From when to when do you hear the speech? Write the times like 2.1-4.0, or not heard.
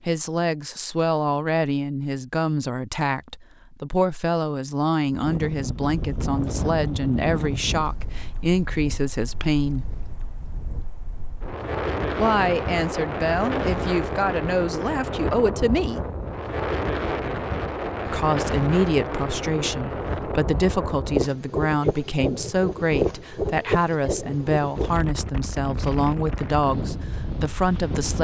0.0-9.9, 12.2-16.1, 18.1-28.1.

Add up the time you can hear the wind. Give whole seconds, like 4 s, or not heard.
23 s.